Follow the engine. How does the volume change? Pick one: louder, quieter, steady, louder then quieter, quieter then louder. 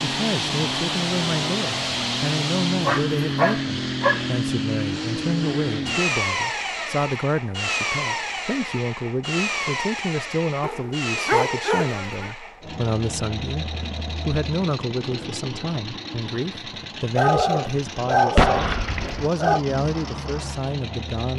quieter.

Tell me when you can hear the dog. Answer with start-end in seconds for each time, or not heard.
2.9-4.3, 10.6-12.3, 17.1-19.6.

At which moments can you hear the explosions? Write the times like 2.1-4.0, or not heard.
18.4-19.3.